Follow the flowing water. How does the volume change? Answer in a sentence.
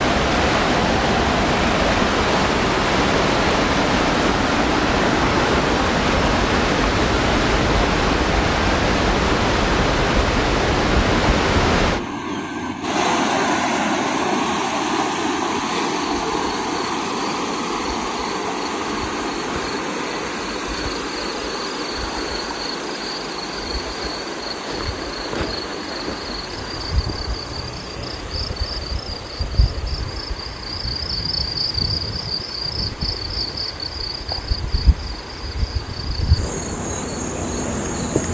The volume of the flowing water goes down.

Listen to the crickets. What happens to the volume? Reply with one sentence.
The loudness of the crickets goes up.